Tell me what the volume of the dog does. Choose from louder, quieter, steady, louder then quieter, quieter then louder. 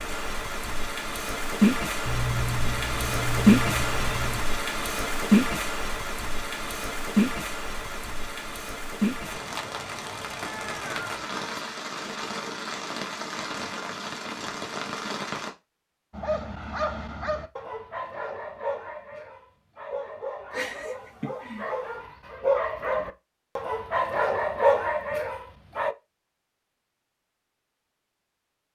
louder.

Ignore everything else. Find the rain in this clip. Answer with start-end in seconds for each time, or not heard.
0.0-15.5.